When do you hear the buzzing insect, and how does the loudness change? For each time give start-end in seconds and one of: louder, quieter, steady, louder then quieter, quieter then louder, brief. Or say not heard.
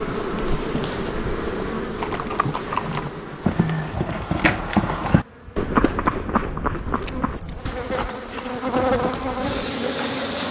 0.0-10.4 quieter then louder.